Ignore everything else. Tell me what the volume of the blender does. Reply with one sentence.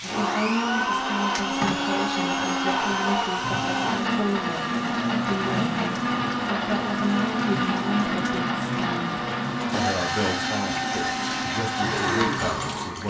The volume of the blender stays about the same.